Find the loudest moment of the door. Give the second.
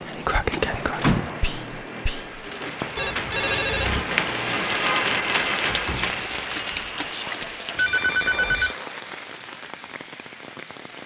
1 s.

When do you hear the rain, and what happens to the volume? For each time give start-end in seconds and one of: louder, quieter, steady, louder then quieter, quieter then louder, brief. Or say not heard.
0.0-11.0 louder then quieter.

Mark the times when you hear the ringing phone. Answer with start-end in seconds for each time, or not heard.
3.0-4.0, 7.8-8.8.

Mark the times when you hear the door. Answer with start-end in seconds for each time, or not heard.
0.5-1.8, 5.7-7.0.